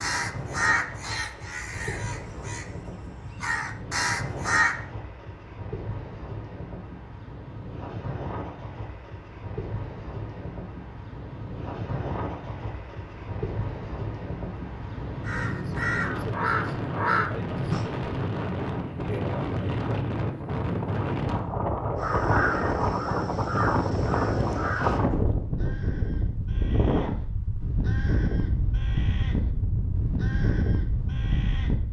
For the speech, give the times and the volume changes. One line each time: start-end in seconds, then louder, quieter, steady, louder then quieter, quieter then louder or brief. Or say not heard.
not heard.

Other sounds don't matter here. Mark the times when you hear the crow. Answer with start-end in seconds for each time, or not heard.
0.0-4.8, 15.2-17.9, 21.9-31.8.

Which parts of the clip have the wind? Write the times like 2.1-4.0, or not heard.
0.0-31.8.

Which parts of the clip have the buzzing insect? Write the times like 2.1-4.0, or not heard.
not heard.